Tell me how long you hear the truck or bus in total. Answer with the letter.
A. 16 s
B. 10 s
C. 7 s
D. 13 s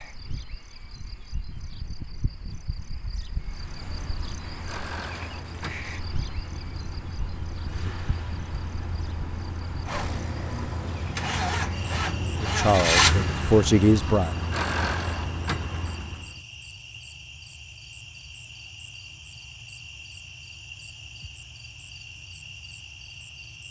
D.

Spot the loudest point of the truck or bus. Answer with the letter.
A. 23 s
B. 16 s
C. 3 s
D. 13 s
D.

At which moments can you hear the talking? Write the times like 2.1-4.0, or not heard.
12.4-14.3.